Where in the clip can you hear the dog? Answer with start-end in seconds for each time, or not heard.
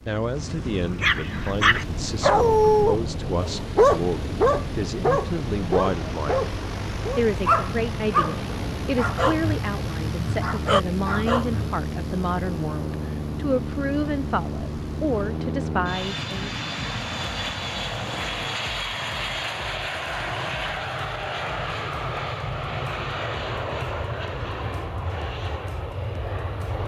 1.0-11.8.